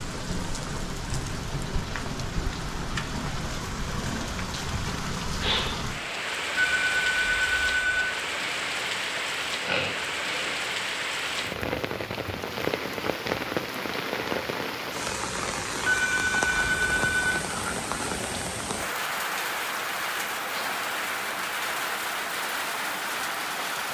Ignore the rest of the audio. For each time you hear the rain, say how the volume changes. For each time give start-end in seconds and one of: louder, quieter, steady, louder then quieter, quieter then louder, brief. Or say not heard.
0.0-23.8 steady.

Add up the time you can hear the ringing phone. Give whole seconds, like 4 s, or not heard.
3 s.